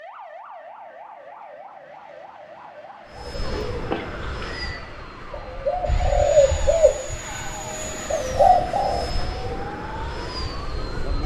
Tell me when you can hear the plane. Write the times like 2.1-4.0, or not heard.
3.1-11.2.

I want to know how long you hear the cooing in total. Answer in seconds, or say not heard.
6 s.